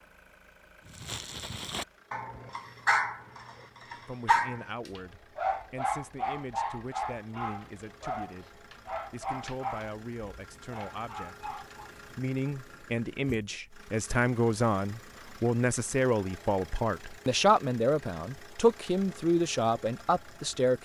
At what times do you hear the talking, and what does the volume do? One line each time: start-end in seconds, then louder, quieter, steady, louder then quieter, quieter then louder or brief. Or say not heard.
4.0-20.8 louder.